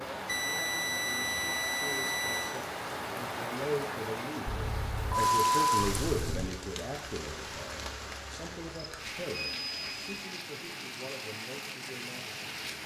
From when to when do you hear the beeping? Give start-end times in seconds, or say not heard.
0.2-2.6, 4.5-6.5, 8.9-10.1.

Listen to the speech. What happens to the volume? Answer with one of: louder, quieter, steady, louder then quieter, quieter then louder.
louder then quieter.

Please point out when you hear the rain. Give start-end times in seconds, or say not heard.
0.0-12.8.